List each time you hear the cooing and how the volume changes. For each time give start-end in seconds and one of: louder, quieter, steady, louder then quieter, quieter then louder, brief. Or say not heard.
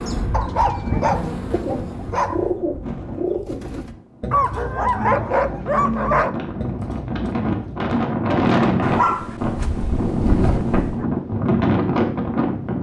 1.5-7.8 quieter.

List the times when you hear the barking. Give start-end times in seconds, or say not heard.
0.3-2.5, 4.3-6.3, 8.8-11.1.